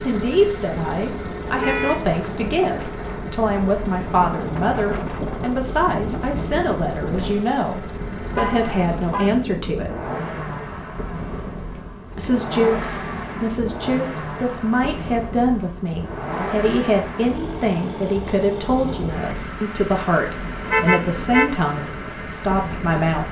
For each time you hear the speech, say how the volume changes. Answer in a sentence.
You can hear the speech from 0.0 to 9.9 s, at a steady volume; and from 12.2 to 23.2 s, at a steady volume.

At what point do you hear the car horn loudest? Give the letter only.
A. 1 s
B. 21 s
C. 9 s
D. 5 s
B.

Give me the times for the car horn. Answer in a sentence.
The car horn can be heard from 1.6 to 2.0 s, from 8.3 to 9.3 s and from 20.6 to 21.5 s.